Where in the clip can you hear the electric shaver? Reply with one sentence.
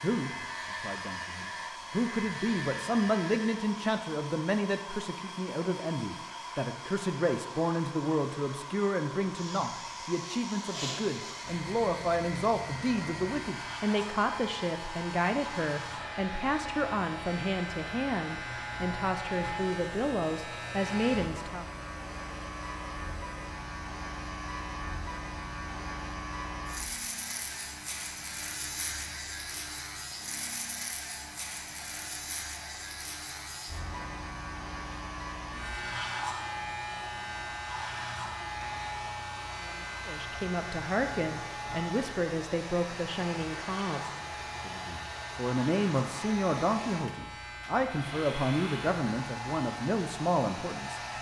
The electric shaver can be heard from 0.0 to 3.6 s and from 9.3 to 51.1 s.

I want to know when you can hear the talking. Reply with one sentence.
You can hear the talking from 0.0 to 21.6 s and from 40.0 to 51.0 s.